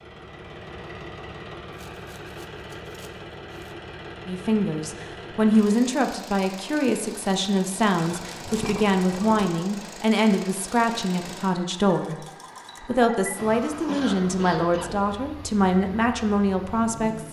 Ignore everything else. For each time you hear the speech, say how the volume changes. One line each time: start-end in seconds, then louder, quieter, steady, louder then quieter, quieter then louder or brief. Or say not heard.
4.2-17.2 steady.